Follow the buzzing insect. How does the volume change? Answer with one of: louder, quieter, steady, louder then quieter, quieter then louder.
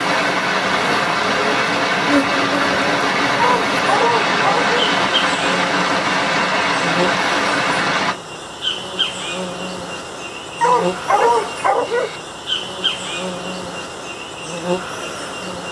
steady.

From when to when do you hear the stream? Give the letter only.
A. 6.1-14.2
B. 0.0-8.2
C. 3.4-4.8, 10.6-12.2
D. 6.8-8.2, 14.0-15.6
B.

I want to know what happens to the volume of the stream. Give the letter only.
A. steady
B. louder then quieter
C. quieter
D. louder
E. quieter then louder
A.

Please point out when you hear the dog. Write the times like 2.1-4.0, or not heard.
3.4-4.8, 10.6-12.2.